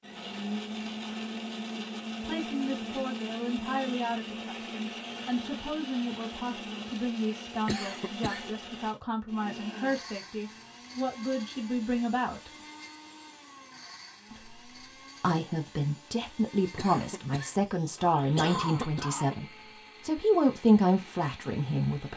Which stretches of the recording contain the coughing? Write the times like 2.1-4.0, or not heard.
7.7-8.6, 16.8-19.4.